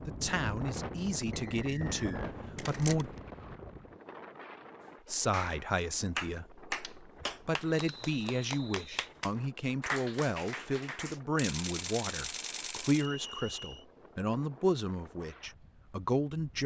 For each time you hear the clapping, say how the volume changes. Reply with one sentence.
The clapping can be heard from 5.3 to 11.2 s, getting quieter then louder.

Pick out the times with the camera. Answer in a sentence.
You can hear the camera from 2.5 to 3.2 s, from 6.8 to 8.2 s and from 11.3 to 13.1 s.